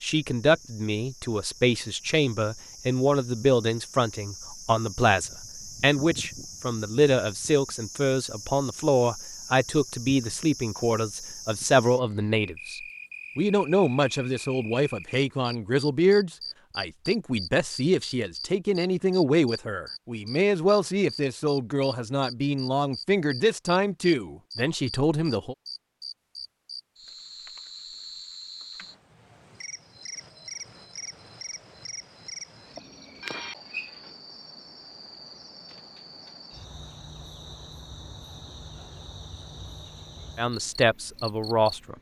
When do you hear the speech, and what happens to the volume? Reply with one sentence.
You can hear the speech from 0.0 to 25.6 s, at a steady volume; and briefly from 40.4 to 41.9 s.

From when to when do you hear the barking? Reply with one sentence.
The barking can't be heard in this clip.